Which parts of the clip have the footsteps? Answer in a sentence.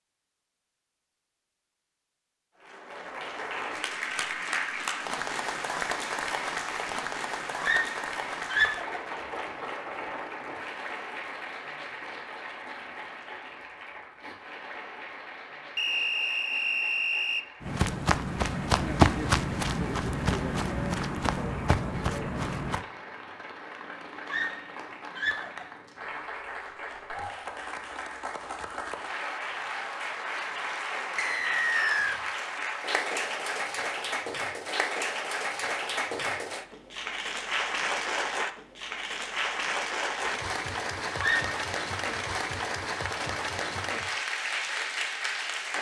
The footsteps can be heard from 17.6 to 22.9 s.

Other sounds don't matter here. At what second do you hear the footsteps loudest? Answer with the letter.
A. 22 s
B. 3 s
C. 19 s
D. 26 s
C.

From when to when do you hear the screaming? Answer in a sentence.
The screaming can be heard from 7.6 to 9.0 s, from 24.2 to 25.6 s and from 41.0 to 41.5 s.